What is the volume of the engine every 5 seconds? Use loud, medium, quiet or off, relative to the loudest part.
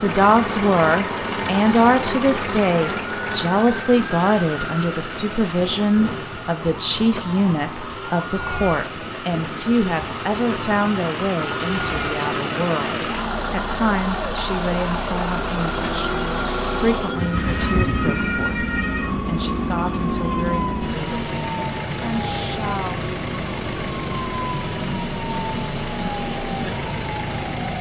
loud, medium, loud, loud, loud, loud.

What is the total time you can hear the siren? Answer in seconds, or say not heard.
28 s.